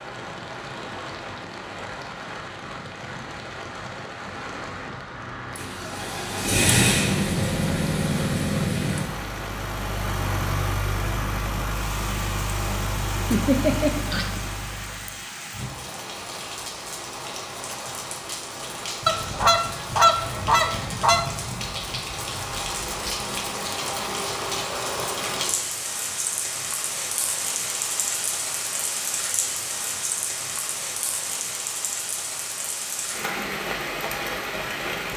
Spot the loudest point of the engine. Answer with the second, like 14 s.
7 s.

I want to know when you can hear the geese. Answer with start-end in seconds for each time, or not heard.
13.3-14.8, 19.1-21.2.